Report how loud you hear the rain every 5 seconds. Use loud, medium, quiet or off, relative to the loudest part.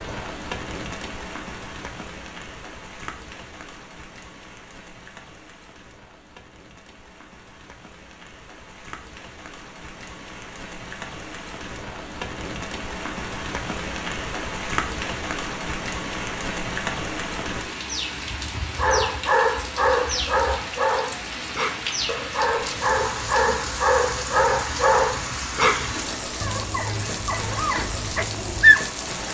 medium, quiet, loud, loud, loud, loud.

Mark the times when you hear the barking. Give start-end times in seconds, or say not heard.
18.8-28.9.